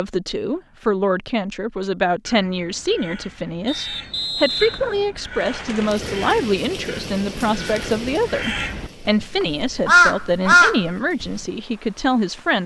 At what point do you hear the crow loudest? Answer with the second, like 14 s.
10 s.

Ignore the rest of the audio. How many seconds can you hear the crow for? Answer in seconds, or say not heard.
9 s.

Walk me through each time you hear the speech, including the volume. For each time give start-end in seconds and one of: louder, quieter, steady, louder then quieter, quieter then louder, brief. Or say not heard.
0.0-12.6 steady.